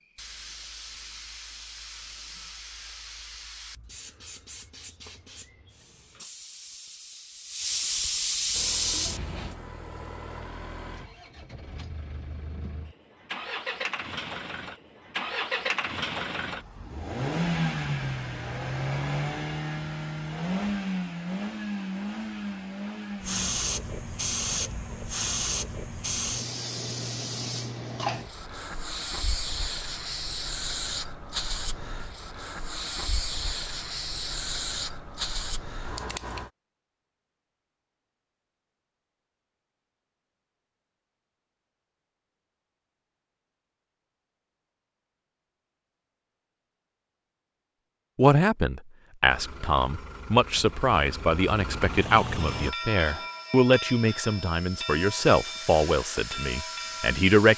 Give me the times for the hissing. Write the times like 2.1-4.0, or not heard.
0.0-9.6, 23.2-36.5, 52.4-57.5.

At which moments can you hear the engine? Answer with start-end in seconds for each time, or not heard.
8.5-23.6, 49.2-52.8.